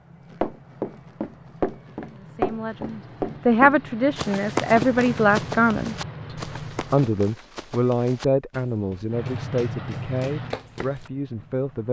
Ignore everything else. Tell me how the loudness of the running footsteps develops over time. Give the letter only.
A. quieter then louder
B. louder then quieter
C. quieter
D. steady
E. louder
C.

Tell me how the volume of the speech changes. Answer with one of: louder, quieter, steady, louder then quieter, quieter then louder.
quieter.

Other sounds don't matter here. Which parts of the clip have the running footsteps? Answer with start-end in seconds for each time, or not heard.
0.3-11.1.